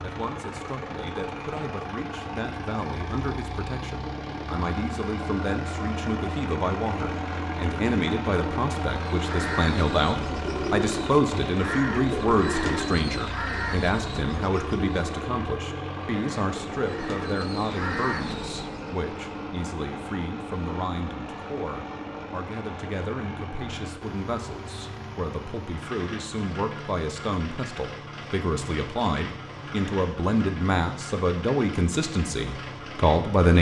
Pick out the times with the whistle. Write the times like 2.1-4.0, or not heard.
not heard.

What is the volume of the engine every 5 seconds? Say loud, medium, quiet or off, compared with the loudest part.
loud, loud, loud, loud, medium, medium, medium.